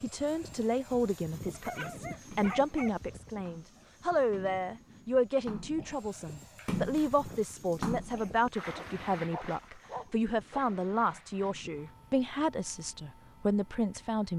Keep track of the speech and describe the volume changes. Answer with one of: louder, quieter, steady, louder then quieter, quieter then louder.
steady.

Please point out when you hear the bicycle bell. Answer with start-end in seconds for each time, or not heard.
not heard.